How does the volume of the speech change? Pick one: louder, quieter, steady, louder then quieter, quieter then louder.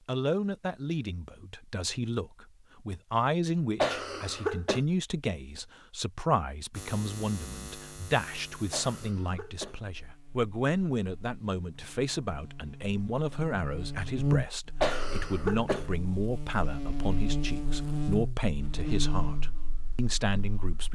steady.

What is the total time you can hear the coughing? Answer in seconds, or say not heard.
3 s.